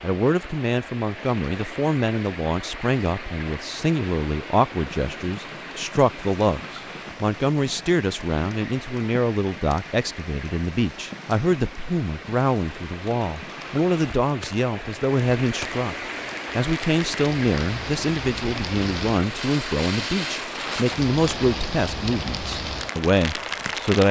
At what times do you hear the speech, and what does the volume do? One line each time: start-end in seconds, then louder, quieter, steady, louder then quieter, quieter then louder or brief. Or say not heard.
0.0-15.9 steady
16.6-24.0 steady.